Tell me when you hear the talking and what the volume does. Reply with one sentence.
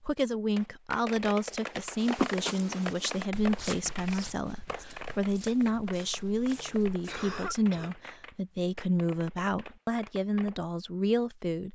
The talking can be heard from 0.0 to 11.6 s, at a steady volume.